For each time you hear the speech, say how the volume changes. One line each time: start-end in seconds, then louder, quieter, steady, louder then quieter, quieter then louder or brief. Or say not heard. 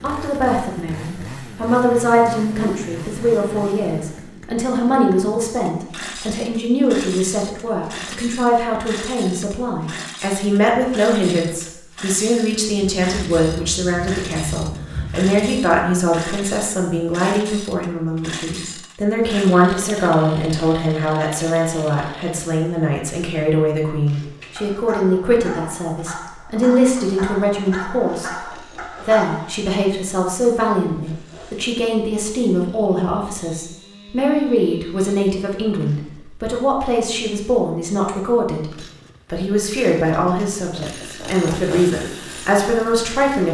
0.0-28.3 steady
29.1-43.4 steady.